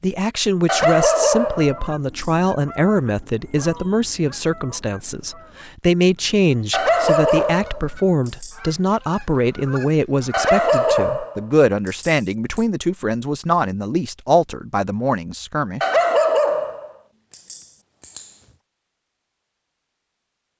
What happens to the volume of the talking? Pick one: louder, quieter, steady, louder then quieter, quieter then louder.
steady.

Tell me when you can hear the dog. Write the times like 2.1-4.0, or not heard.
0.7-2.2, 6.7-8.6, 10.3-12.6, 15.8-16.9, 17.5-18.2.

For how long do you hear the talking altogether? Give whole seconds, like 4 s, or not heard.
16 s.